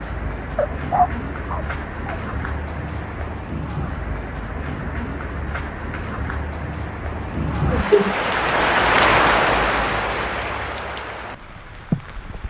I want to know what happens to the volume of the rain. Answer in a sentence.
The volume of the rain goes up, then down.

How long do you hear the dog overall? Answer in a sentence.
The dog can be heard for 2 seconds in total.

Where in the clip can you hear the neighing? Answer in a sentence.
You can't hear the neighing here.